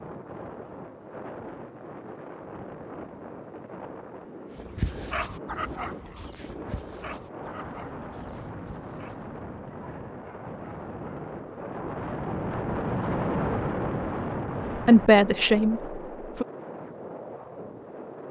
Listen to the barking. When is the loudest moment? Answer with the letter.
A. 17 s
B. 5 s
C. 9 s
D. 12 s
B.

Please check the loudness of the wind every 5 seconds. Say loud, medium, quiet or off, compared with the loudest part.
medium, medium, loud, medium.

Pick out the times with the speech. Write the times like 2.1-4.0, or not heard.
14.8-16.4.